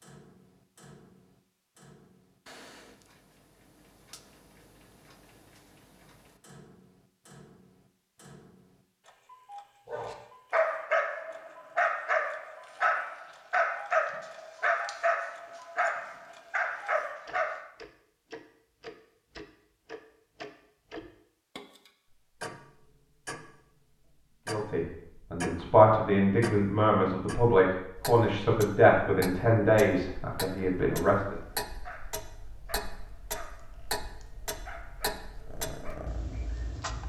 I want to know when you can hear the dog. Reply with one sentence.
The dog can be heard from 9.8 to 17.6 s and from 31.3 to 36.7 s.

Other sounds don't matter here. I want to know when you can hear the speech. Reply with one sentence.
The speech can be heard from 24.4 to 31.4 s.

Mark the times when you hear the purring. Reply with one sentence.
The purring can be heard from 35.5 to 37.0 s.